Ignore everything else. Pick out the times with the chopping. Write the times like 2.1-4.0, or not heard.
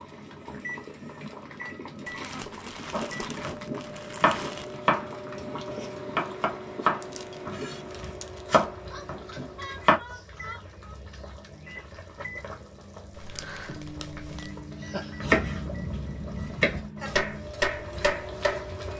2.9-10.0, 15.2-18.6.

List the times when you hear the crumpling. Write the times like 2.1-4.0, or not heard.
2.0-4.8, 7.0-8.6, 13.1-14.6.